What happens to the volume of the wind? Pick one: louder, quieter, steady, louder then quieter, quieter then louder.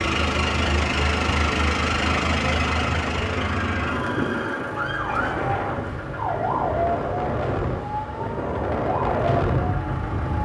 louder.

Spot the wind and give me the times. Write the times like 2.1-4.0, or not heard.
5.0-10.4.